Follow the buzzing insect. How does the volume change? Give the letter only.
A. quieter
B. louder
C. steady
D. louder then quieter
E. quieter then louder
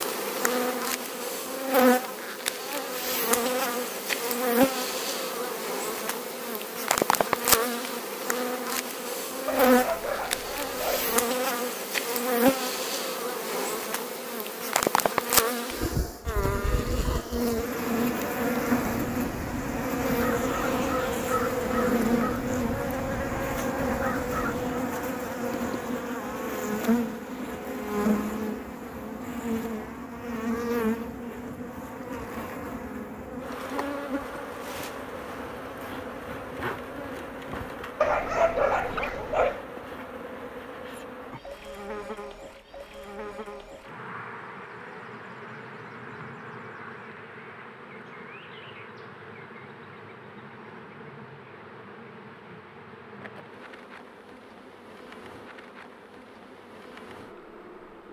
A.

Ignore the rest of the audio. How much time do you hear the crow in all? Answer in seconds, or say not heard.
6 s.